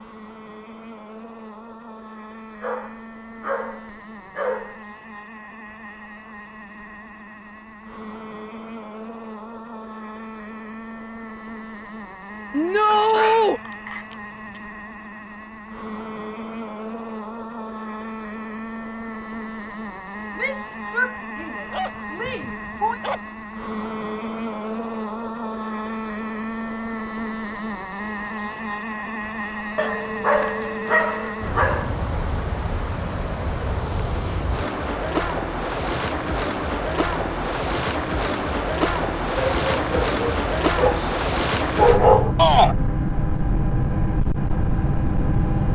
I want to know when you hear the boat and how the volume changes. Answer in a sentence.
The boat can be heard from 0.0 to 45.6 s, getting louder.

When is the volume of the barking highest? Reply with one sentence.
The loudest moment of the barking is at 42 seconds.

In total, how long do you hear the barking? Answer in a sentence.
You can hear the barking for 11 seconds altogether.